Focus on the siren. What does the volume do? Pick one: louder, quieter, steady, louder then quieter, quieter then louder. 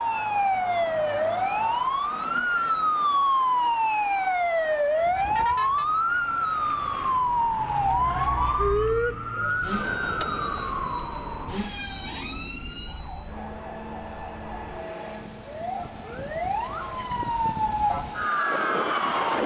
quieter then louder.